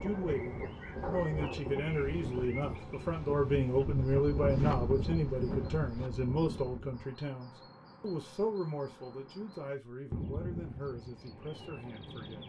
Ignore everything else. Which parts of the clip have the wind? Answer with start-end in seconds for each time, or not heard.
0.0-7.0.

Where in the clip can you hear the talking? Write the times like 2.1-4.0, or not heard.
0.0-12.4.